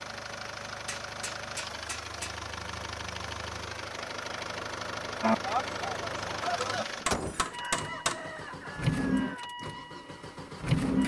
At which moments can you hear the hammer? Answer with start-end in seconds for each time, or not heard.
0.7-2.4, 6.4-8.2.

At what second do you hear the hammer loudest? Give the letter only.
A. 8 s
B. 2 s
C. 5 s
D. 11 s
A.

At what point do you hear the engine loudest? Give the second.
11 s.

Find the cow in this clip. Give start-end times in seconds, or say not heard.
5.2-6.8.